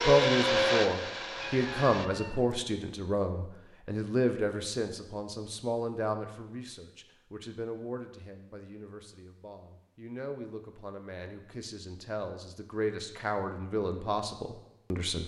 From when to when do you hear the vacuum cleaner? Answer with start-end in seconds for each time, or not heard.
0.0-2.1.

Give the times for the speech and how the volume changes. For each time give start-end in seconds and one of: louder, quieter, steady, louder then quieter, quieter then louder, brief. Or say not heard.
0.1-15.2 quieter then louder.